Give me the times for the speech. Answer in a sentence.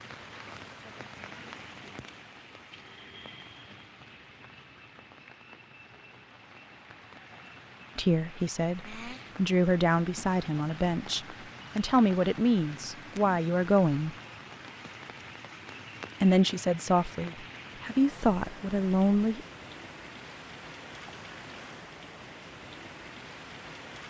You can hear the speech from 8.0 to 14.2 s and from 16.2 to 19.4 s.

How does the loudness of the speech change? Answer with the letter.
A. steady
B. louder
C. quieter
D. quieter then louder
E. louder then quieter
A.